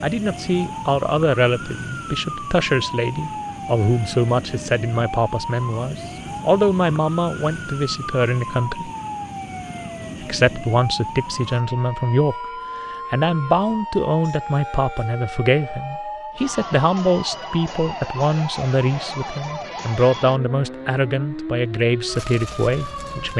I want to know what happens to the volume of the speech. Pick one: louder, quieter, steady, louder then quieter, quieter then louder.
steady.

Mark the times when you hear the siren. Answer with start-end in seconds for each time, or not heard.
0.0-23.3.